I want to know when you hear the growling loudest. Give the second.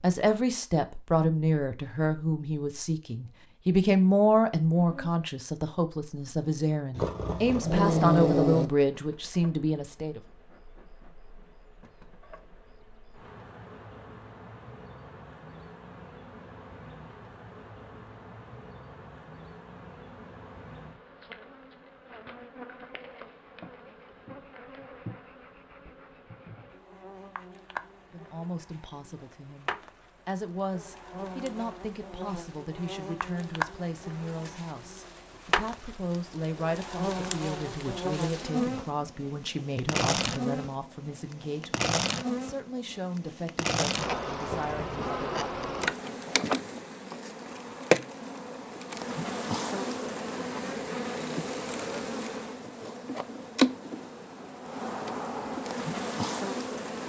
8 s.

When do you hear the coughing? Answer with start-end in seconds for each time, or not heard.
not heard.